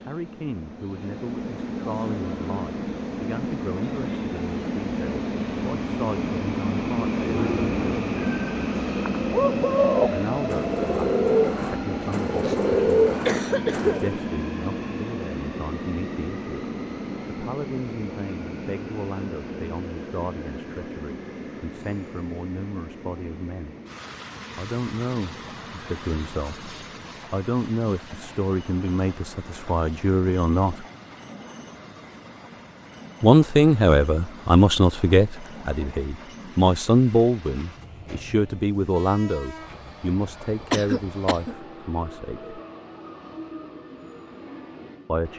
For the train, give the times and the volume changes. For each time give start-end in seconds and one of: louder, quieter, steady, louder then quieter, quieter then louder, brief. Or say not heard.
0.0-45.3 quieter.